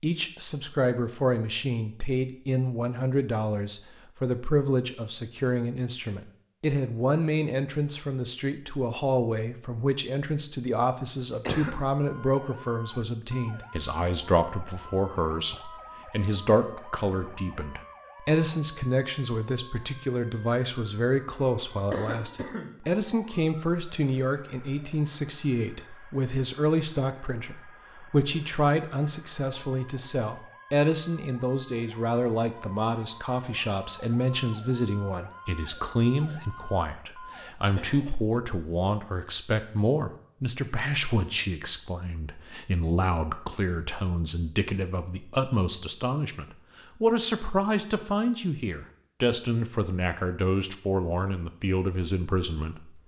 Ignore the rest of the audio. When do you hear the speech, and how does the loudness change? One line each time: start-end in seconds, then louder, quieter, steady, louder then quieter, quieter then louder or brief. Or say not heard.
0.0-53.0 steady.